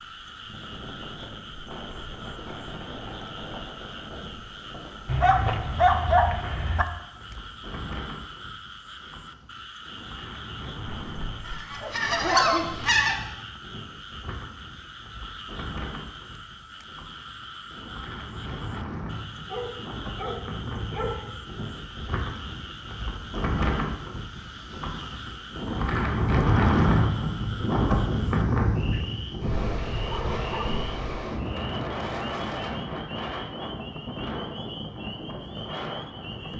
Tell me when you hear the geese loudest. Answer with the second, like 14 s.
13 s.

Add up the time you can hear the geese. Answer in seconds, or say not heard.
2 s.